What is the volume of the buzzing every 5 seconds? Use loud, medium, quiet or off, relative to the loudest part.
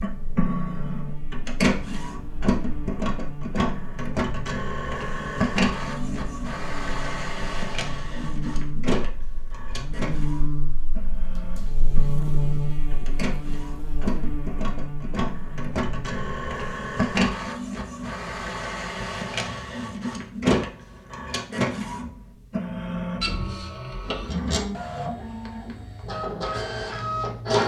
medium, medium, loud, medium, off, off.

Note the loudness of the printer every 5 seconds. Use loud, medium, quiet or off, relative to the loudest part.
loud, loud, medium, loud, loud, loud.